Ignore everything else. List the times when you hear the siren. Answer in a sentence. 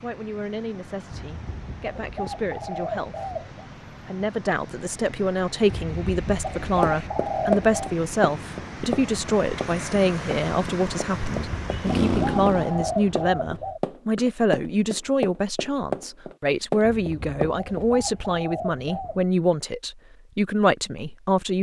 You can't hear the siren here.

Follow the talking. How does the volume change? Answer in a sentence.
The loudness of the talking goes up.